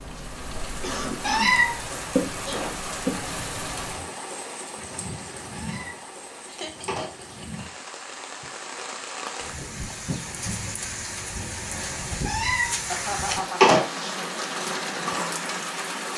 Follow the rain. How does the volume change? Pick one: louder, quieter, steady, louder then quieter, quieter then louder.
quieter then louder.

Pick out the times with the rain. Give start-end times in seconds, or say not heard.
0.0-16.1.